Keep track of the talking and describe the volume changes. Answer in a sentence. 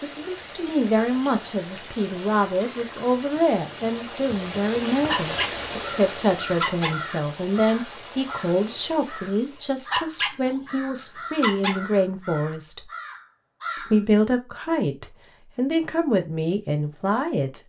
The loudness of the talking stays about the same.